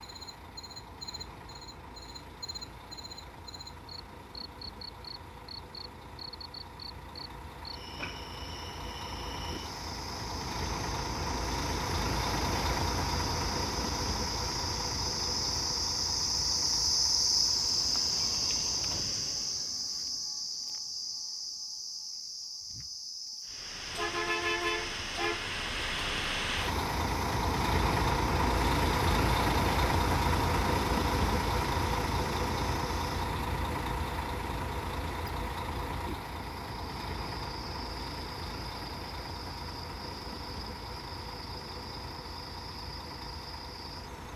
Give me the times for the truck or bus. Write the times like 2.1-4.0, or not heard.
0.0-19.8, 23.4-44.3.